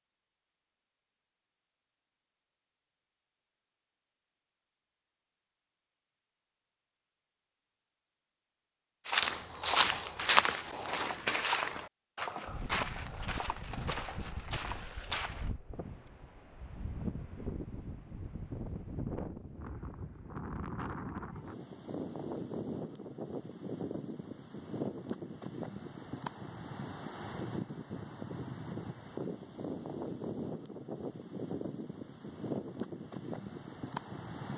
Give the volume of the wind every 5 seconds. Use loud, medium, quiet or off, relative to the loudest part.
off, off, medium, loud, loud, loud, loud.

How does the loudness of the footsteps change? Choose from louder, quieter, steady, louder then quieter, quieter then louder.
quieter.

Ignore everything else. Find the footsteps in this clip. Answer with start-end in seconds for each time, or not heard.
9.1-15.5.